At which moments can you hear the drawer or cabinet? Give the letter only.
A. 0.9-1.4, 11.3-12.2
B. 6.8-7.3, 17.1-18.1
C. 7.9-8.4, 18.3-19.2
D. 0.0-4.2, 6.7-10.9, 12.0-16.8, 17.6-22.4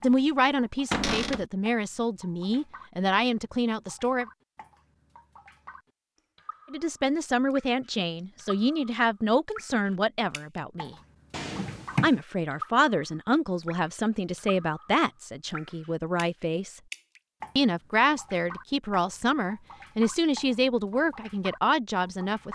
A.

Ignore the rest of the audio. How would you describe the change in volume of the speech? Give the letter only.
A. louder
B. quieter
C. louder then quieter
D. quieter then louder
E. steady
E.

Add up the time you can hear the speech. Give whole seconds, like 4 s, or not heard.
18 s.